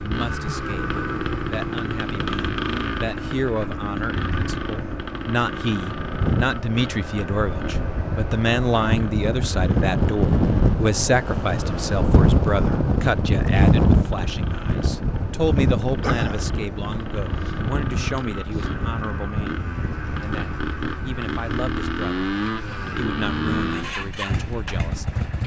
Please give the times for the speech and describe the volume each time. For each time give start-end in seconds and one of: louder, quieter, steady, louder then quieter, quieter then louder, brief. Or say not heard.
0.0-22.2 louder then quieter
22.9-25.2 brief.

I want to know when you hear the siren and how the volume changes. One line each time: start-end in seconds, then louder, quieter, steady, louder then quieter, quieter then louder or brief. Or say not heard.
not heard.